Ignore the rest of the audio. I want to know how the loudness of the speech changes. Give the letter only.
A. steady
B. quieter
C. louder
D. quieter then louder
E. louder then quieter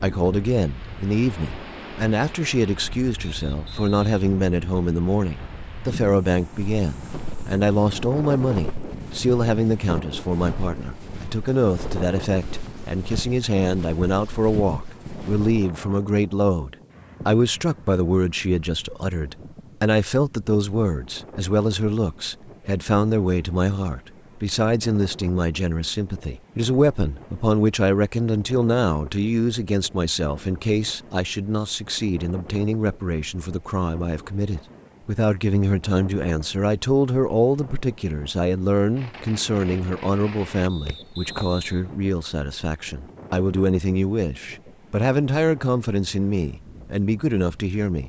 A.